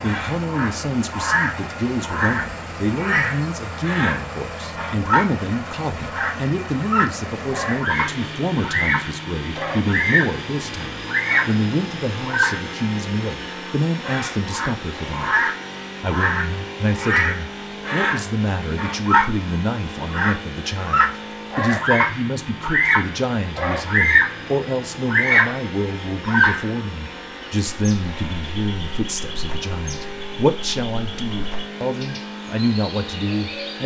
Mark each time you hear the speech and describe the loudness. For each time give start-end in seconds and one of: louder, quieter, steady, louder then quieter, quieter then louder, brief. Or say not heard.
0.0-33.8 steady.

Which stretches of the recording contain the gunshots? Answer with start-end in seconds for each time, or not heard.
not heard.